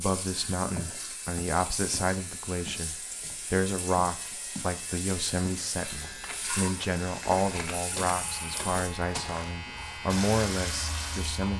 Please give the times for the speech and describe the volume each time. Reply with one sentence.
The speech can be heard from 0.0 to 11.5 s, at a steady volume.